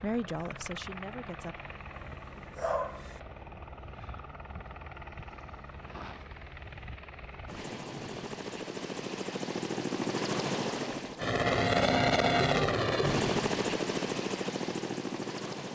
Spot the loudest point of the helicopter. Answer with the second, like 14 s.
12 s.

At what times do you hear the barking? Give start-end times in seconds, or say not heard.
1.9-3.2.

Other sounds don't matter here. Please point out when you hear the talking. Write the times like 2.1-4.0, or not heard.
0.0-1.6.